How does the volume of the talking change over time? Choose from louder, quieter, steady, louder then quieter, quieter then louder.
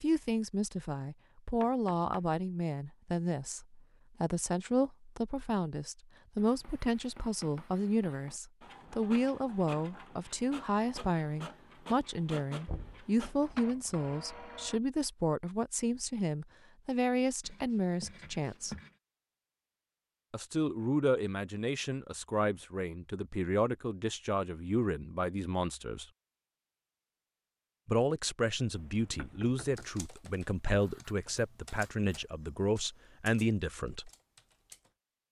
steady.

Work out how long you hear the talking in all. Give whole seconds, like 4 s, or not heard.
31 s.